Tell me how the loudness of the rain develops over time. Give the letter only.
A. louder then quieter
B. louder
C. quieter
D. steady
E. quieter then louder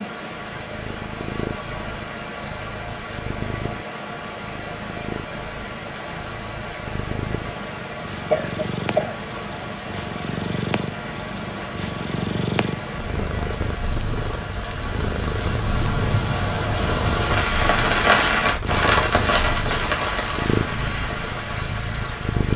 B.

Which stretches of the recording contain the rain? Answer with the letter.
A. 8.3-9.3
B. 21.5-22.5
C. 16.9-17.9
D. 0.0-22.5
D.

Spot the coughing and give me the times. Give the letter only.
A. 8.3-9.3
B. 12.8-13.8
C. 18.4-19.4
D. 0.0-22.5
A.